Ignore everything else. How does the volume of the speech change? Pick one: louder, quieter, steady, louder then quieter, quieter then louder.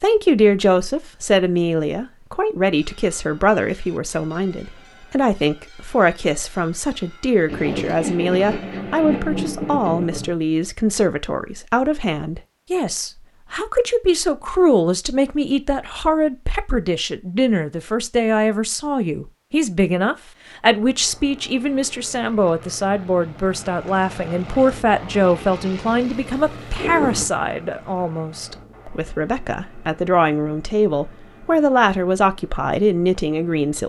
steady.